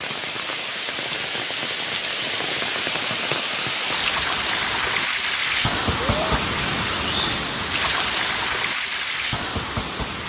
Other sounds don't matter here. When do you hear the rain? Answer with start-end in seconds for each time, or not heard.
0.0-10.2.